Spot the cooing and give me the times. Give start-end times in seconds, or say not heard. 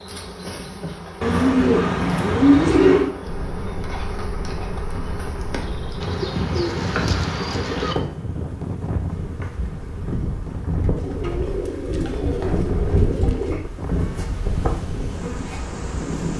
1.2-3.1, 6.0-8.0, 10.9-13.7.